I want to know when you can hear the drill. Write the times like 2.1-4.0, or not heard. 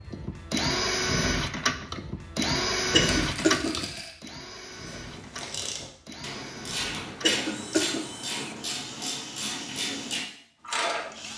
0.0-11.3.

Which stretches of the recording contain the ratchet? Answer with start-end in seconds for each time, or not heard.
4.5-11.3.